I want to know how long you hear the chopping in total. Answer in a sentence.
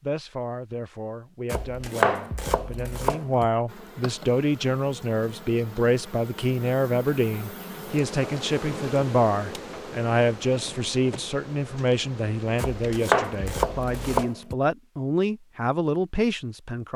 You can hear the chopping for 4 seconds altogether.